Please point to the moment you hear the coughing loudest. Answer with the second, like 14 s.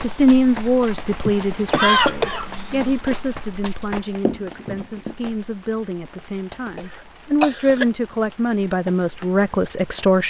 2 s.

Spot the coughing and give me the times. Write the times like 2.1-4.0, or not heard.
1.2-3.0, 6.8-7.8.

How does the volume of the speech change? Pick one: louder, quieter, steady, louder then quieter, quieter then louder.
quieter then louder.